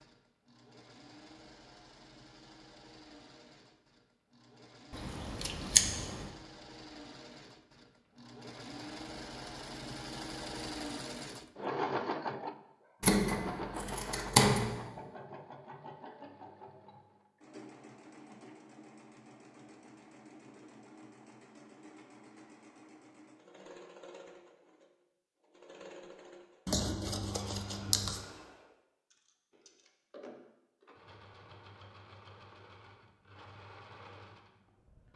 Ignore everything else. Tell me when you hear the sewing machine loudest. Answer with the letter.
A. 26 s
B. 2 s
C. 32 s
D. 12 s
D.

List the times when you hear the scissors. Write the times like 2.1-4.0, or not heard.
4.9-6.3, 13.0-14.8, 26.6-28.2.